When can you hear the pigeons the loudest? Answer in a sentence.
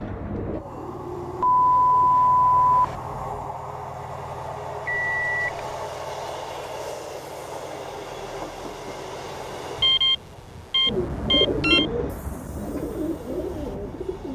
The loudest moment of the pigeons is at 12 seconds.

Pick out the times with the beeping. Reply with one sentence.
You can hear the beeping from 1.4 to 3.0 s, from 4.8 to 5.7 s and from 9.8 to 11.8 s.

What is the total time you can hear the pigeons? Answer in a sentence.
You can hear the pigeons for 7 seconds altogether.